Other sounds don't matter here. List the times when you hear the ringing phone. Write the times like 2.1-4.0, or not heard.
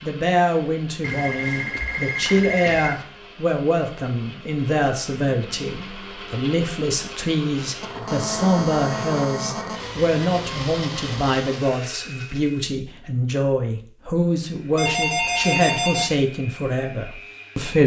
1.0-3.0, 7.8-9.8, 14.8-16.1.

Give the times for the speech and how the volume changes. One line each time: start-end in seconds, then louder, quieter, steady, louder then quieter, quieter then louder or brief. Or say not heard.
0.0-17.8 steady.